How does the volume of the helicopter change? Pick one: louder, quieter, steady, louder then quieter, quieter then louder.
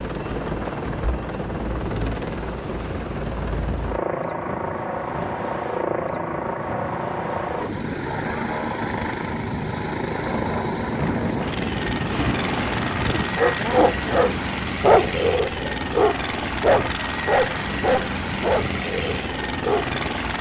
steady.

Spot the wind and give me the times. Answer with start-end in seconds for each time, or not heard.
0.0-20.1.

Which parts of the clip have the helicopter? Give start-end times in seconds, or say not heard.
0.0-20.3.